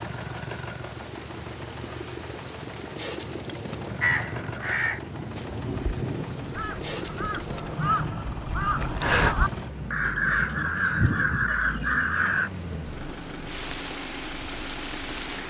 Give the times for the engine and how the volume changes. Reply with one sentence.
You can hear the engine from 0.0 to 15.4 s, at a steady volume.